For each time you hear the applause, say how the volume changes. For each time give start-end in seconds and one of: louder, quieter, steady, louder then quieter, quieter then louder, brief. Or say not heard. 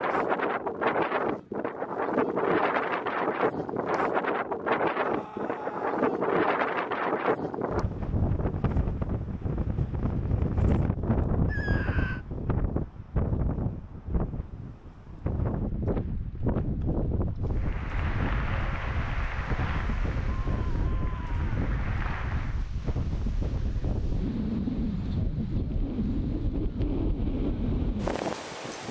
17.5-22.8 quieter then louder.